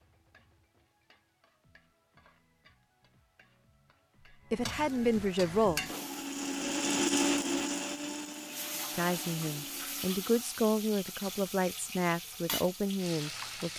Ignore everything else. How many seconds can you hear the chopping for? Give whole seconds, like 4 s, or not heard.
not heard.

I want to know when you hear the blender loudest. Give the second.
7 s.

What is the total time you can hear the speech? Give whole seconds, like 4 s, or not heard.
6 s.